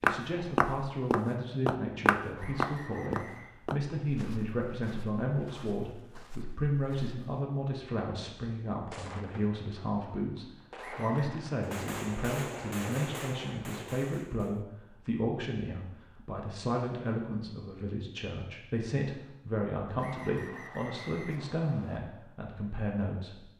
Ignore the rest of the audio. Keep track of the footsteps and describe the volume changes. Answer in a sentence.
The loudness of the footsteps goes down.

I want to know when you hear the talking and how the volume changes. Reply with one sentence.
You can hear the talking from 0.0 to 23.4 s, at a steady volume.